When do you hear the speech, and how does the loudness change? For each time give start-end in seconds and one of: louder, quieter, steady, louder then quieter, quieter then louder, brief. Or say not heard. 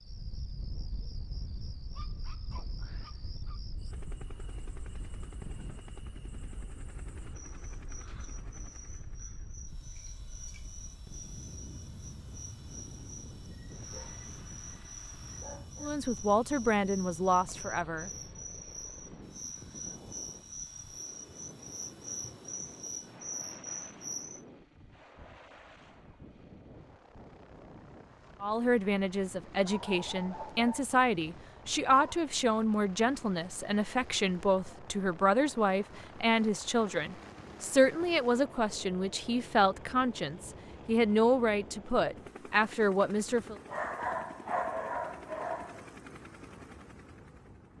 15.8-18.1 brief
28.4-43.5 steady.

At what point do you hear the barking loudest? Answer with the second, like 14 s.
45 s.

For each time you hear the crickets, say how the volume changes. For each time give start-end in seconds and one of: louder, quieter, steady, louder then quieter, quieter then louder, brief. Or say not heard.
0.0-24.4 louder.